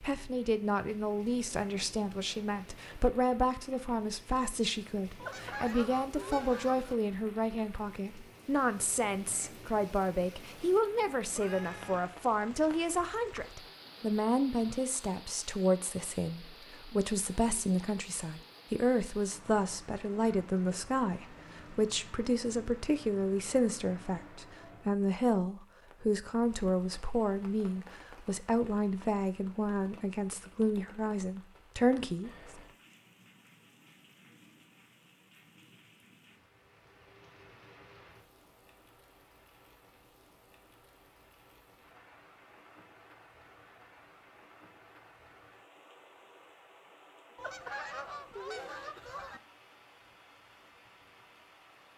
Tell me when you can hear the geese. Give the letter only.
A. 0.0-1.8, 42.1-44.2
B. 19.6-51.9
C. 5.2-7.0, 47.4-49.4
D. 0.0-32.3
C.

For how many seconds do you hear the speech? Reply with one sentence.
You can hear the speech for 32 seconds altogether.